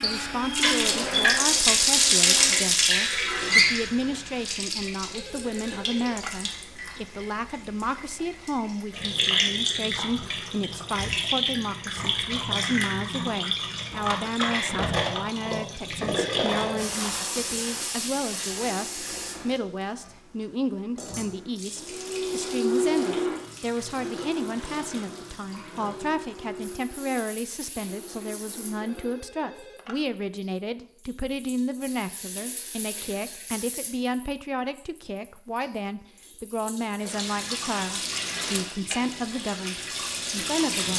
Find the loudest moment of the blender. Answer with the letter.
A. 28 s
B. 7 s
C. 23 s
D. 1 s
C.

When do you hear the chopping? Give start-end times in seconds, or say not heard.
not heard.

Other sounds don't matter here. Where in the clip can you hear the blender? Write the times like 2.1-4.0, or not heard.
0.0-2.6, 21.2-29.2.